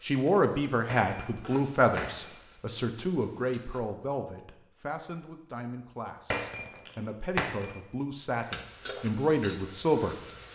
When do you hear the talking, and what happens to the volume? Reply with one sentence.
The talking can be heard from 0.0 to 10.5 s, getting quieter then louder.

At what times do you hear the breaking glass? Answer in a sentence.
The breaking glass can be heard from 0.8 to 2.4 s and from 6.3 to 7.8 s.